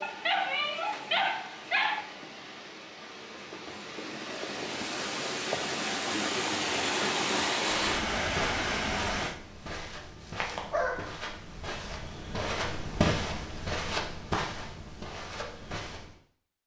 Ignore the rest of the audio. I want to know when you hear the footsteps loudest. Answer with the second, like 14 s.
13 s.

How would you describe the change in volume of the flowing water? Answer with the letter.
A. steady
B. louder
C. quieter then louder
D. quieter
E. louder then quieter
B.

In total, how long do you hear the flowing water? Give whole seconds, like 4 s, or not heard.
9 s.